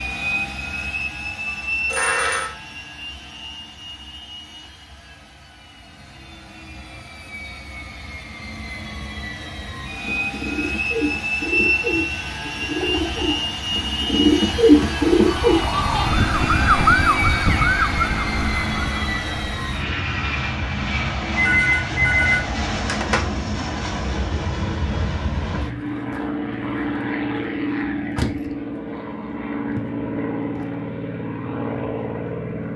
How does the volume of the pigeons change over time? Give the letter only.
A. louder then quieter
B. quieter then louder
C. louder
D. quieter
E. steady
C.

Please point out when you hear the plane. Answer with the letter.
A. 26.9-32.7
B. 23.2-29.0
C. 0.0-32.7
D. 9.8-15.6
C.